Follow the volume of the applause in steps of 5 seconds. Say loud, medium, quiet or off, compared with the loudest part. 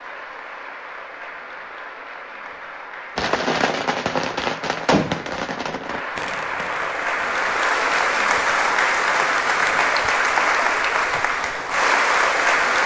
quiet, loud, loud.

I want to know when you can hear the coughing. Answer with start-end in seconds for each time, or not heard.
not heard.